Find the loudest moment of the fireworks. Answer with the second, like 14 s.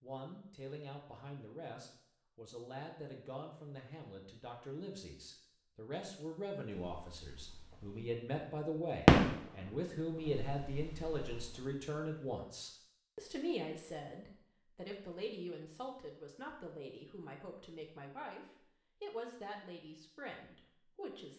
9 s.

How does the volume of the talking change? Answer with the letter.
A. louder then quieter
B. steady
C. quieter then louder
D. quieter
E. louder
A.